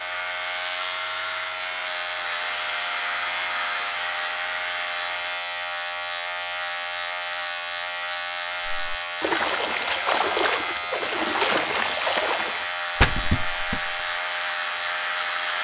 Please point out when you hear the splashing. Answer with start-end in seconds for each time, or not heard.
8.7-14.1.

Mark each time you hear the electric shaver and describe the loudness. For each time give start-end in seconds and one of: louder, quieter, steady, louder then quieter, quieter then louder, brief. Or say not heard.
0.0-15.5 steady.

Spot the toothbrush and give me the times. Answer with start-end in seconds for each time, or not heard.
not heard.